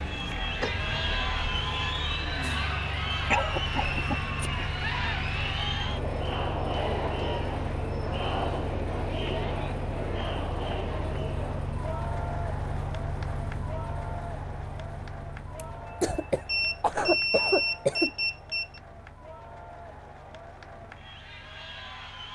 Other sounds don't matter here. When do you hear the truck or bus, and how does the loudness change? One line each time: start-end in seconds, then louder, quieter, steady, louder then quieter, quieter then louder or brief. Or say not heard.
0.0-22.3 quieter.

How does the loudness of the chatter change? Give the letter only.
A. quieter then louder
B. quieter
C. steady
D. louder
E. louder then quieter
B.